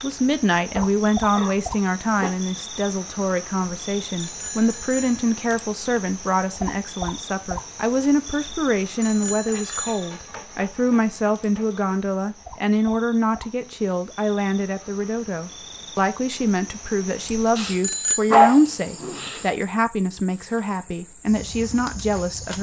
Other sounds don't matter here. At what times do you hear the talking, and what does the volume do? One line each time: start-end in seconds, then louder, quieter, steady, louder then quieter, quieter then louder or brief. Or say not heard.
0.0-22.5 steady.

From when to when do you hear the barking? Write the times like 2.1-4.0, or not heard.
0.8-2.4, 9.4-11.8, 18.3-19.3.